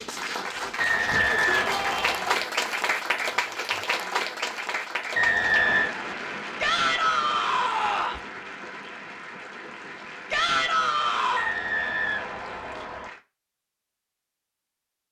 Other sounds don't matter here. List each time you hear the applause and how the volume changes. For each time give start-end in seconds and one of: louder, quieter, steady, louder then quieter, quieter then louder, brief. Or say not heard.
0.0-13.2 quieter.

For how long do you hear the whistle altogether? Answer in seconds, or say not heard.
4 s.